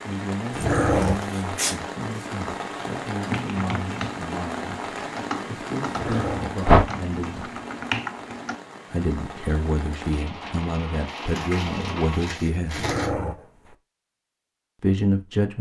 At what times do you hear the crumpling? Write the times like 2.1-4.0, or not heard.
0.9-2.3, 11.2-13.1.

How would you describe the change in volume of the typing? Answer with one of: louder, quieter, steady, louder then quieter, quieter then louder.
louder then quieter.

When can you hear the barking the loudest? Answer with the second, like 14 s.
1 s.